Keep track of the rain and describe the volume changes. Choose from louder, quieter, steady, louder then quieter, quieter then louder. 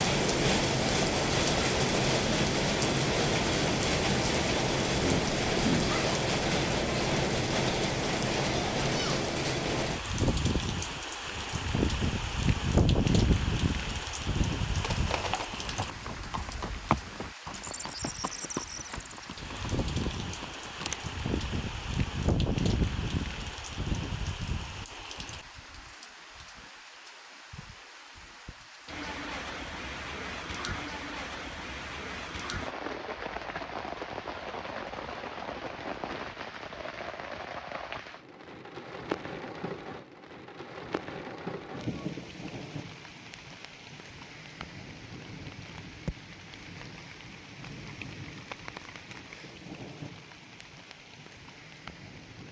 quieter.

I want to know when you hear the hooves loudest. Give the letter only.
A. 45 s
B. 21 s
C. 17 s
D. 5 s
C.